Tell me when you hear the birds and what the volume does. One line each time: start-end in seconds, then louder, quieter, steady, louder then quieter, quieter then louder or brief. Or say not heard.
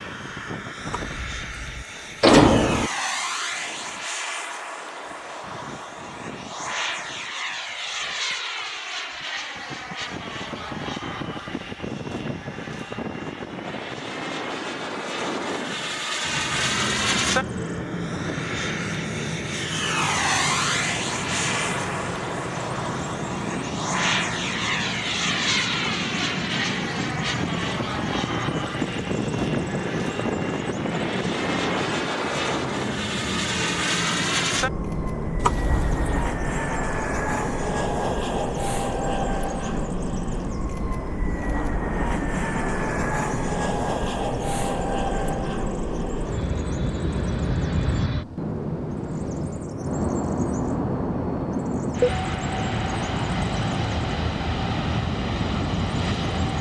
16.2-56.5 steady.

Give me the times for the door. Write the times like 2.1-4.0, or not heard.
0.8-2.9, 35.4-36.4.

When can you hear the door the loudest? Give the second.
2 s.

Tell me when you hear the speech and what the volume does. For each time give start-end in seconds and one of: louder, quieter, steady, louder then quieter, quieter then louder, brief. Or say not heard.
not heard.